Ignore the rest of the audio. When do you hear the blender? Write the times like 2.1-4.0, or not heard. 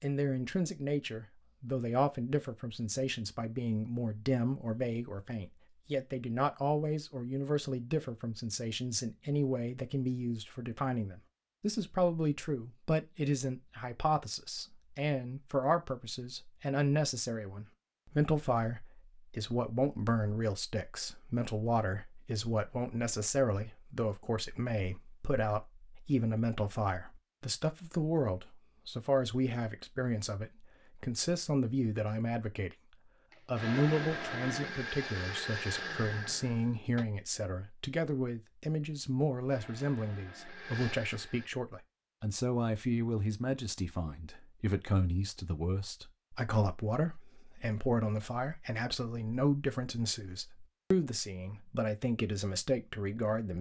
33.3-37.0, 39.5-41.5.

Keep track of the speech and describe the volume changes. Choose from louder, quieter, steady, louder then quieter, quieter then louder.
steady.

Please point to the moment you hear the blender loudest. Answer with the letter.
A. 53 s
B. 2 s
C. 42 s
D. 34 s
D.